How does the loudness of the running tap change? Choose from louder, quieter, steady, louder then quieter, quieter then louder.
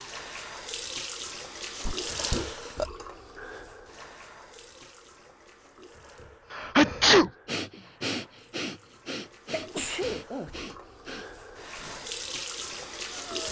quieter then louder.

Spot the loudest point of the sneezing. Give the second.
7 s.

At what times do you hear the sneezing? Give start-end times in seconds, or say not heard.
1.9-2.9, 6.5-7.3, 9.5-10.5.